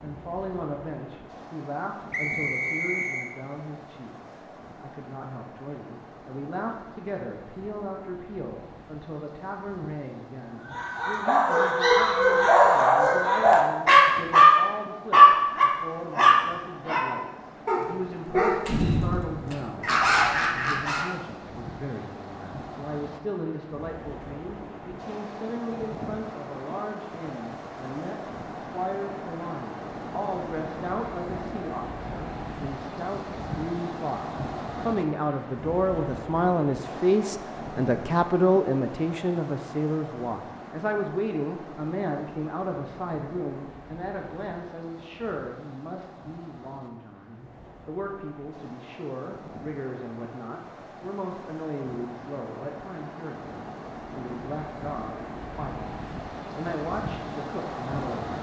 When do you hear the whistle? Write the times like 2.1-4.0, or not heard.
2.1-3.4.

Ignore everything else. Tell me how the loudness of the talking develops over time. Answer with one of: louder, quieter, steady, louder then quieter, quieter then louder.
louder then quieter.